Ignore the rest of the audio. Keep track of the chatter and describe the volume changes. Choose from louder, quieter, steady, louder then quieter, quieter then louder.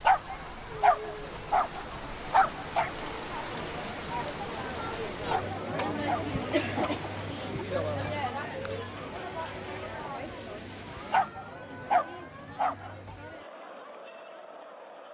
louder then quieter.